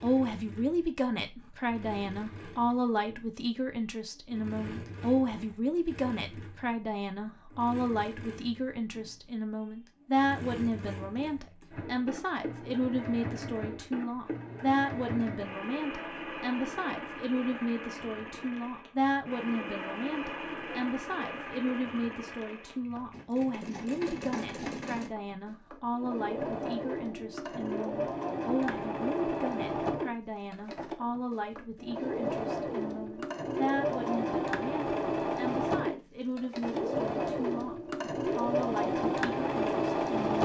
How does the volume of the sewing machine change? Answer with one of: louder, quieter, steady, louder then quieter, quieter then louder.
louder.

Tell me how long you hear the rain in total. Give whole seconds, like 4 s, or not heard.
not heard.